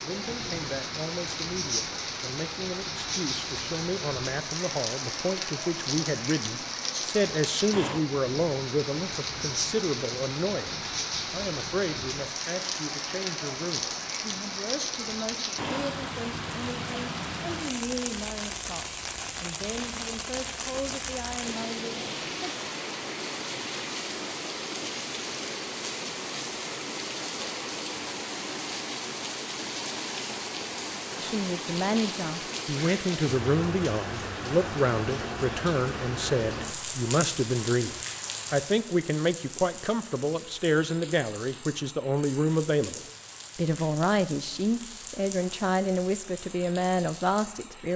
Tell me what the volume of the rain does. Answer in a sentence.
The loudness of the rain goes down.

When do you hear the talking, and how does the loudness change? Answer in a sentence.
The talking can be heard from 0.0 to 22.6 s, getting louder then quieter; and from 31.1 to 47.9 s, at a steady volume.